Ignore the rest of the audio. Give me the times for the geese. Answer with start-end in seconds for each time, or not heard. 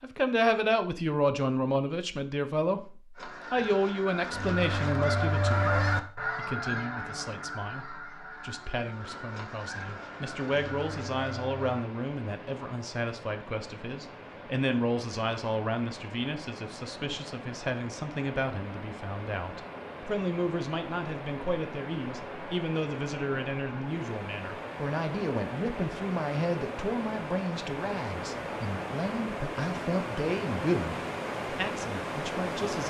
3.1-11.8.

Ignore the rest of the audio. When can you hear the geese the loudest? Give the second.
6 s.